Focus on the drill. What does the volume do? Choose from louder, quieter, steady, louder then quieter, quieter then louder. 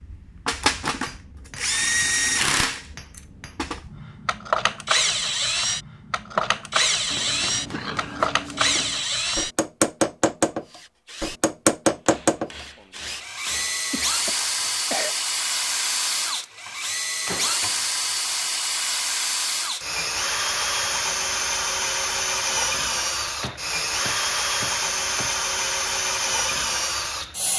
steady.